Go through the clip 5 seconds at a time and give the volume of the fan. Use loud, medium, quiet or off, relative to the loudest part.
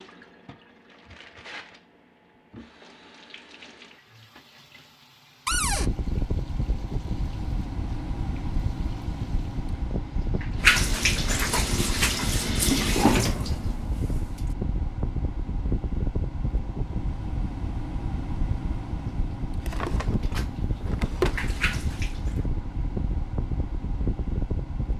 off, loud, loud, loud, loud.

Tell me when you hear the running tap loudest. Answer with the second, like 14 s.
11 s.